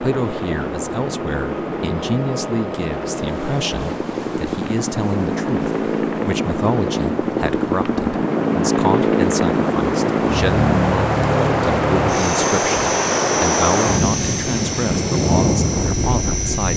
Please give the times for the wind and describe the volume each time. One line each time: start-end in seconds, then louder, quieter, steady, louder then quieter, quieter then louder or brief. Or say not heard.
0.0-16.7 louder.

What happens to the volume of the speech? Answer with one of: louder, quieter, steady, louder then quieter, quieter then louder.
steady.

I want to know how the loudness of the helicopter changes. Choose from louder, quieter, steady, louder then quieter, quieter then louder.
louder then quieter.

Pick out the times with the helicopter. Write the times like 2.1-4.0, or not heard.
0.0-16.7.